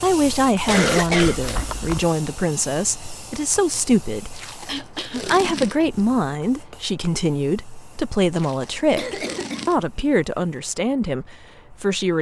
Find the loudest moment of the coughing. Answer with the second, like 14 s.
1 s.